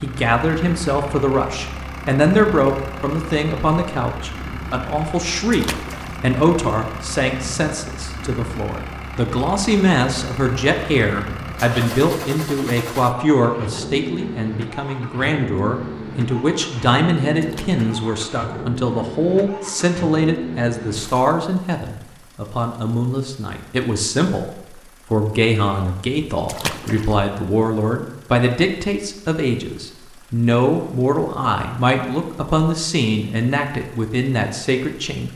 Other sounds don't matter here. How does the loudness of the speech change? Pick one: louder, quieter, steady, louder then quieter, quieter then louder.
steady.